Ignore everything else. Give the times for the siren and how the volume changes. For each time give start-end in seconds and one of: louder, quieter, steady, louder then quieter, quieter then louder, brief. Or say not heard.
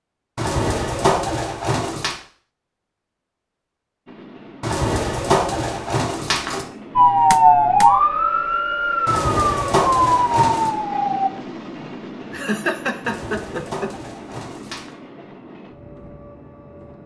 7.0-11.3 quieter.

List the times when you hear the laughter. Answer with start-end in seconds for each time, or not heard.
12.3-13.9.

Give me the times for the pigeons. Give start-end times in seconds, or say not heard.
0.3-2.1, 4.6-6.7, 9.1-10.7, 13.0-14.9.